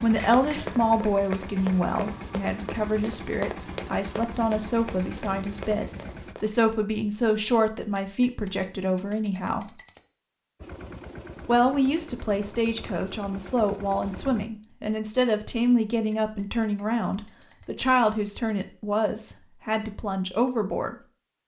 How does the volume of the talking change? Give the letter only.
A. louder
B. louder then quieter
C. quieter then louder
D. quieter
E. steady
E.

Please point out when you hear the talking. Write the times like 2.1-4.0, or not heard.
0.0-9.8, 11.4-20.9.